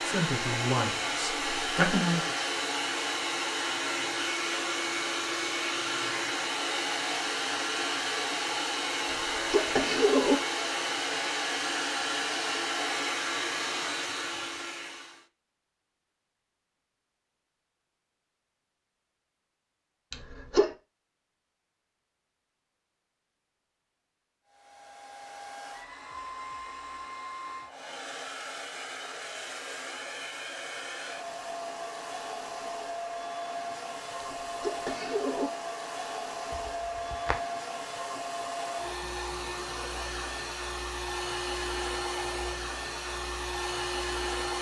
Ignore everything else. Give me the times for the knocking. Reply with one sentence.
The knocking can be heard from 36.5 to 37.4 s.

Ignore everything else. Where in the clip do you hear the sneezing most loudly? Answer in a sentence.
The loudest moment of the sneezing is at 10 seconds.